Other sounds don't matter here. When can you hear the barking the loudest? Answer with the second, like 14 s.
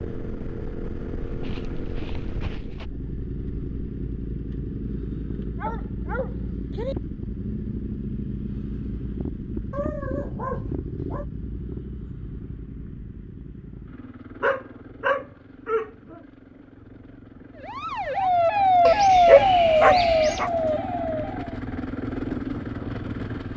19 s.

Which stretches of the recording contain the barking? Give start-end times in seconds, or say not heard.
1.2-2.9, 5.5-7.0, 9.7-11.2, 14.4-16.2, 18.9-20.5.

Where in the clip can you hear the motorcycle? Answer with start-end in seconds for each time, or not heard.
0.0-23.5.